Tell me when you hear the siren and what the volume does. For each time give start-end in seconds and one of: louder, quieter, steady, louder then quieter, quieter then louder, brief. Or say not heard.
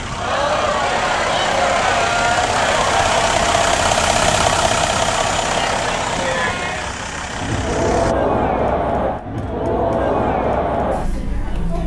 not heard.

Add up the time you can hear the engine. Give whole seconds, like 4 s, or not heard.
8 s.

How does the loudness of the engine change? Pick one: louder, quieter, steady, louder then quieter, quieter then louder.
louder then quieter.